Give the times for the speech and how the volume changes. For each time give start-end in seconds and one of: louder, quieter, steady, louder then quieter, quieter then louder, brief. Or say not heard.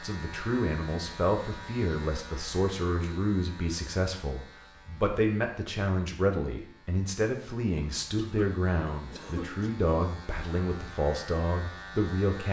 0.0-12.4 steady.